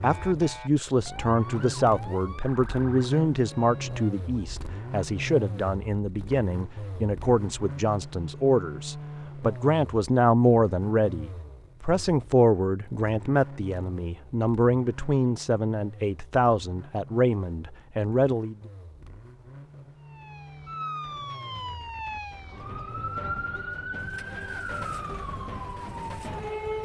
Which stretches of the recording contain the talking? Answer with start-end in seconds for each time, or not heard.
0.0-18.6.